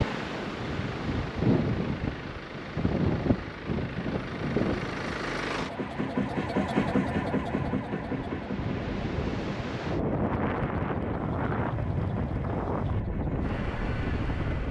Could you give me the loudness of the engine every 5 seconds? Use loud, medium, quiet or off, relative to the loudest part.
medium, loud, medium.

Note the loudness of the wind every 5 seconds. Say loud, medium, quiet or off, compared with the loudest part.
loud, medium, loud.